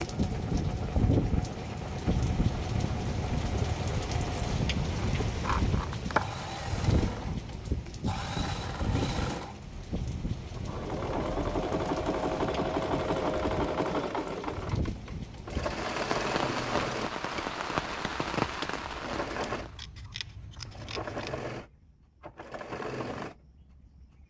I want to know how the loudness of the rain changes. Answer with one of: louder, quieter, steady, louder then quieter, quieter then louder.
quieter then louder.